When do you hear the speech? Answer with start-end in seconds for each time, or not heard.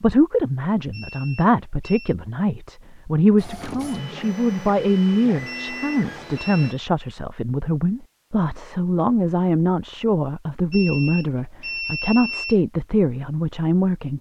0.0-14.1.